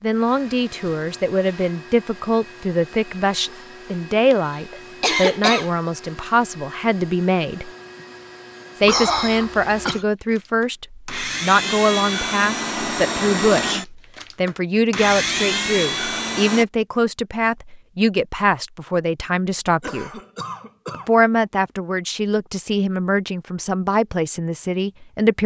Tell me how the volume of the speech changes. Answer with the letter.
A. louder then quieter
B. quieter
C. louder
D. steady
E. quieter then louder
D.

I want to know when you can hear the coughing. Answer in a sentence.
You can hear the coughing from 4.3 to 5.7 s, from 8.8 to 10.1 s and from 19.8 to 21.1 s.